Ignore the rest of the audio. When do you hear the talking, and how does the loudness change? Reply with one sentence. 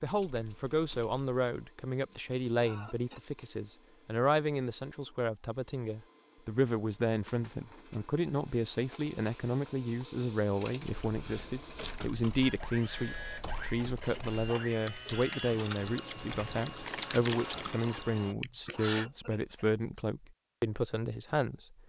You can hear the talking from 0.0 to 21.8 s, at a steady volume.